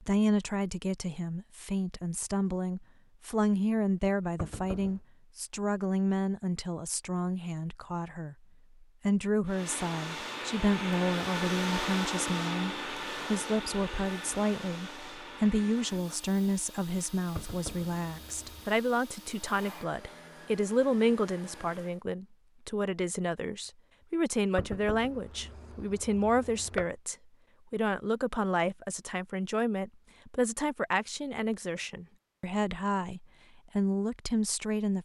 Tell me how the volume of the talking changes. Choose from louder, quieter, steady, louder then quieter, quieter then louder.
steady.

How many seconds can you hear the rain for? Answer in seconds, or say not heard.
not heard.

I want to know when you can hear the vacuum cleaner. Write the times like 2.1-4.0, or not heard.
9.4-22.1.